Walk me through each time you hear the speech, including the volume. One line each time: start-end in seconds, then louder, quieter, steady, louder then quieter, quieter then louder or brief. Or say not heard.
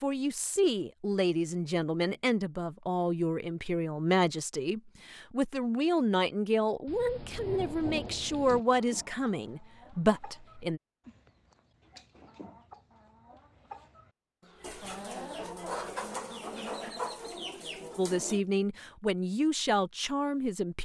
0.0-10.8 steady
17.9-20.8 brief.